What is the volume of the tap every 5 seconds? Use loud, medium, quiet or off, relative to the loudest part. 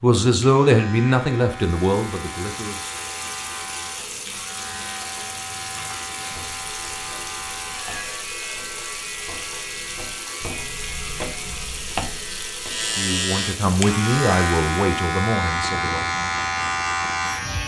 loud, loud, loud, off.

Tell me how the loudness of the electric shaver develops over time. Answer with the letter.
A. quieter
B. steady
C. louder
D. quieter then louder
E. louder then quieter
C.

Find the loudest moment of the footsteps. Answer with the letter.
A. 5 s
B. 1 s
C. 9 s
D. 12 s
D.